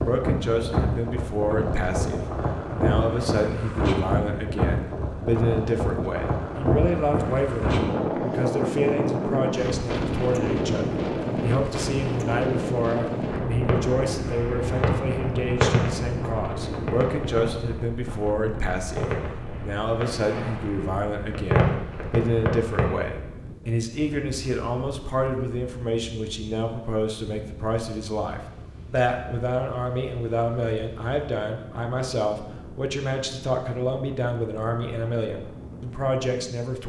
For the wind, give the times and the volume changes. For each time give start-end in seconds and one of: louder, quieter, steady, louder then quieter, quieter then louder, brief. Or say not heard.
0.0-36.8 quieter.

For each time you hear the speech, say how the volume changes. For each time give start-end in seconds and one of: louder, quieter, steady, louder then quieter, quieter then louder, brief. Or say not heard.
0.1-36.8 steady.